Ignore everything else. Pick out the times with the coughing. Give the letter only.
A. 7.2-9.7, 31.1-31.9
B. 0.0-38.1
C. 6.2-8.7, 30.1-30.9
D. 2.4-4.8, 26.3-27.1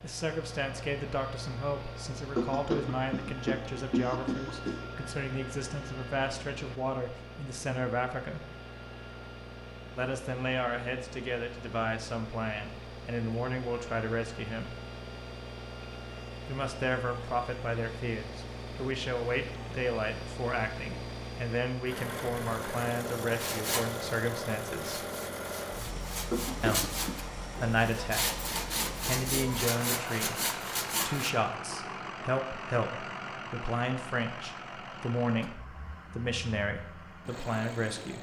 D.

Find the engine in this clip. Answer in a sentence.
You can hear the engine from 0.0 to 38.1 s.